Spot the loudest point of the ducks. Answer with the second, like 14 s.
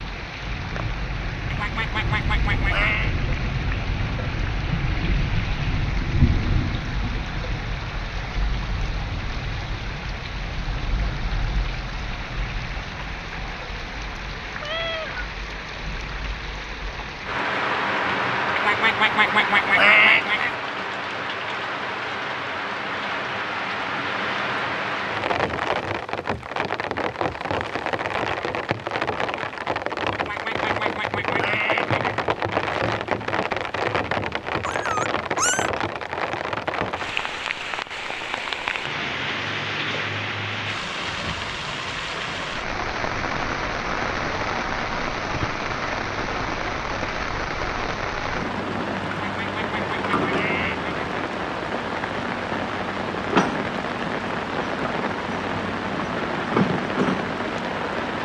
20 s.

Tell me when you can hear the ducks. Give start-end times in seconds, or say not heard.
1.5-3.1, 18.6-20.6, 30.1-31.9, 49.1-50.9.